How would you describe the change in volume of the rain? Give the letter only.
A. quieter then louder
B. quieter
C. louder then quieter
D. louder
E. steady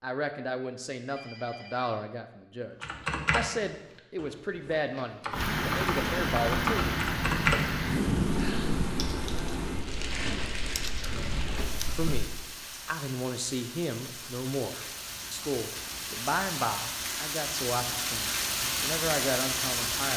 A.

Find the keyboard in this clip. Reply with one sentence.
The keyboard can be heard from 2.8 to 12.4 s.